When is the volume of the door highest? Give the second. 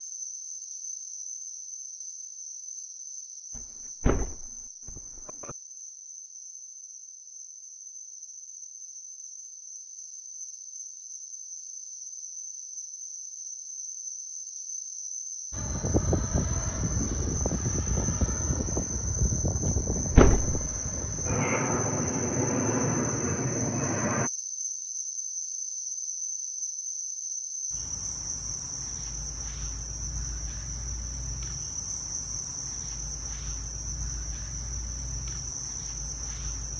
20 s.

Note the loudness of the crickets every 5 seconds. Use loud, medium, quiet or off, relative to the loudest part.
medium, medium, medium, loud, loud, loud, loud, loud.